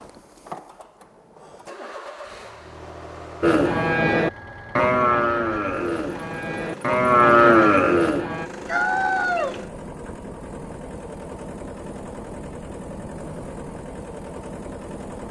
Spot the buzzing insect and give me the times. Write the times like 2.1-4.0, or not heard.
not heard.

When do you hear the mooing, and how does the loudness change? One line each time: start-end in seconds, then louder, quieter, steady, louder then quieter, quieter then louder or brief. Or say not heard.
3.4-8.5 quieter then louder.